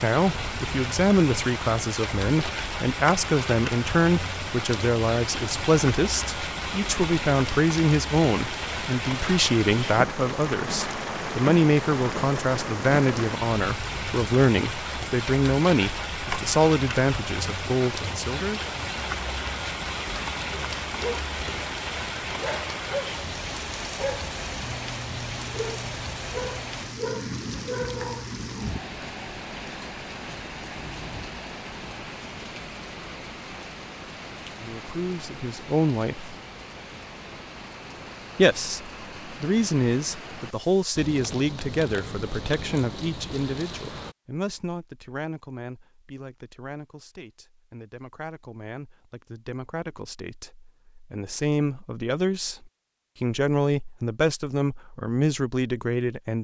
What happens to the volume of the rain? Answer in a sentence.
The volume of the rain goes down.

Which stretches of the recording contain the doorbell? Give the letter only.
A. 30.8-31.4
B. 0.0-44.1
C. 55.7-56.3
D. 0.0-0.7
A.